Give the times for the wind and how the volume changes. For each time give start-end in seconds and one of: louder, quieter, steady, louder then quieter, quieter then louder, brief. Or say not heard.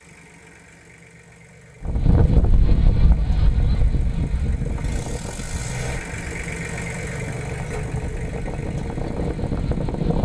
1.8-10.2 quieter then louder.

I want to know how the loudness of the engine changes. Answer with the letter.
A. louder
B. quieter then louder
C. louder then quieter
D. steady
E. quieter
C.